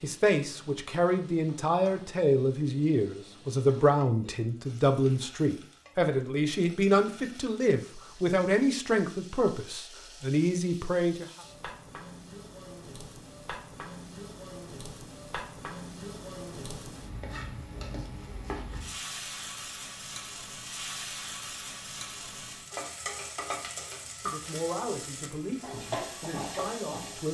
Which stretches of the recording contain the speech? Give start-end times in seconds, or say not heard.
0.0-11.2, 24.2-27.2.